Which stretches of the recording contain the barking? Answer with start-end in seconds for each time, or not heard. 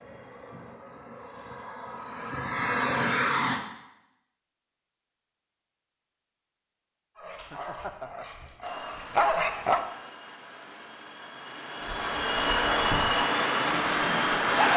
7.2-9.8, 11.8-14.7.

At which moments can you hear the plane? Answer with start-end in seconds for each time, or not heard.
0.0-3.6, 8.6-14.7.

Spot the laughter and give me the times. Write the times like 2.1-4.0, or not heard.
7.3-8.2.